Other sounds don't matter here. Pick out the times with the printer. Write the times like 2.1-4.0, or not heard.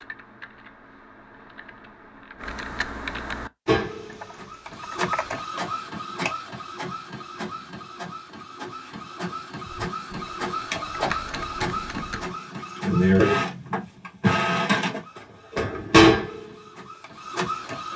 3.6-17.9.